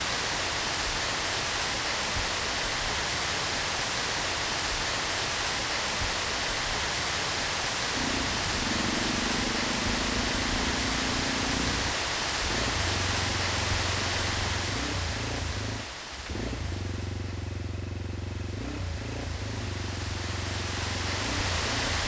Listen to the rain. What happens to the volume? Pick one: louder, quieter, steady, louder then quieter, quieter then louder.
quieter.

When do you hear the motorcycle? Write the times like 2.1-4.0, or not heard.
7.9-22.0.